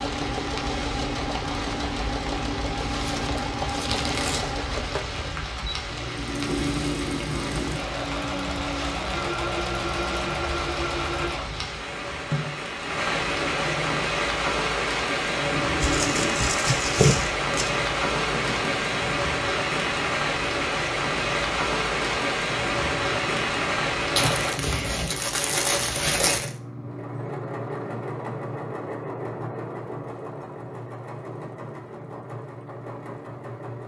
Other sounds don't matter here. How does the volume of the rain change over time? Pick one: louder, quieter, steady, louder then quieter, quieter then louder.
louder.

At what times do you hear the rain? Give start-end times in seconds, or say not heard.
0.0-24.6.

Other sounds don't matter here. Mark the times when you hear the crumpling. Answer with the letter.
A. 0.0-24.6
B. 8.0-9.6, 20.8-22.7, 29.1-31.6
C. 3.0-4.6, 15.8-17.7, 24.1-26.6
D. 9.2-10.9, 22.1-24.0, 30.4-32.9
C.